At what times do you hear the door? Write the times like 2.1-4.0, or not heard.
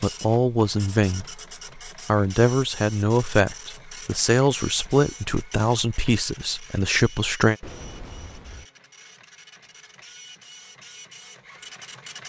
7.6-8.7.